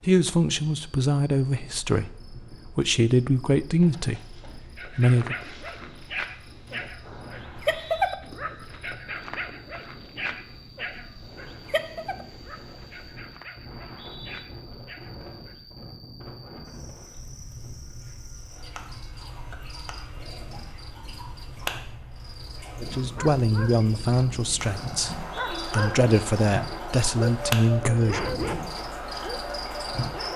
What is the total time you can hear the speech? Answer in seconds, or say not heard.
11 s.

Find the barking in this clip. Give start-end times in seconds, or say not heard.
4.8-15.6, 23.1-23.9, 25.4-30.3.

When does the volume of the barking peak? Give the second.
8 s.